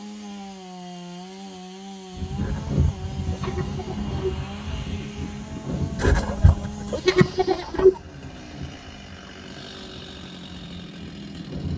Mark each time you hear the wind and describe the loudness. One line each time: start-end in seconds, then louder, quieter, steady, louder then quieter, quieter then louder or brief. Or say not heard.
2.1-11.7 quieter.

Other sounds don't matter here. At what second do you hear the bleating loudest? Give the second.
8 s.